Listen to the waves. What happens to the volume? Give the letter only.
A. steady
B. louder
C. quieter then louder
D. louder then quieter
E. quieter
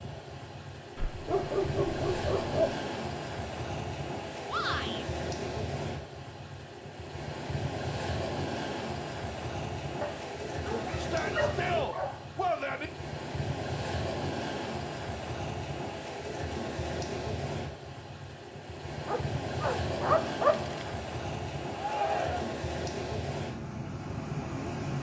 A.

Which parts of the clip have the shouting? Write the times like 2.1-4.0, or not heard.
4.5-5.0, 10.9-12.9, 21.8-22.6.